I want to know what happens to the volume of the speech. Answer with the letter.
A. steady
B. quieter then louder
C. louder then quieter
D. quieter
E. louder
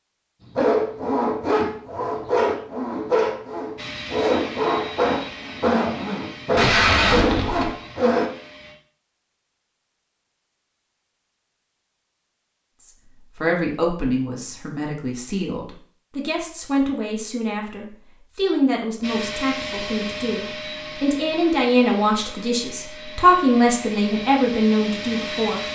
E.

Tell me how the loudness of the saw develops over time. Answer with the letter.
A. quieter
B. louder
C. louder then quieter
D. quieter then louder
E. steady
E.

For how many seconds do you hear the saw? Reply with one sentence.
The saw can be heard for 8 seconds in total.